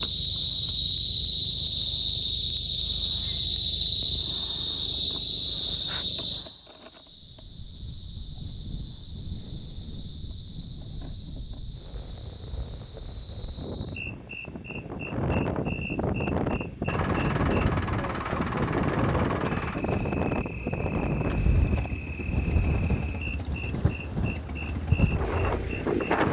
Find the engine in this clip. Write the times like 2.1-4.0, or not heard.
16.9-26.2.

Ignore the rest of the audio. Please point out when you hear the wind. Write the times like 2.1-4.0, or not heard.
7.1-26.2.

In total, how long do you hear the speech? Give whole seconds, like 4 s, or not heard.
not heard.